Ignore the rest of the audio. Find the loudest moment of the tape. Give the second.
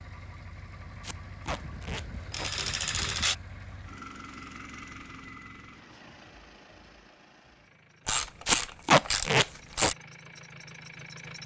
9 s.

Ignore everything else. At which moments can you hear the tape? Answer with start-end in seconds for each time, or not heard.
1.0-2.5, 8.4-9.9.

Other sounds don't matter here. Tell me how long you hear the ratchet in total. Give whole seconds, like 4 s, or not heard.
4 s.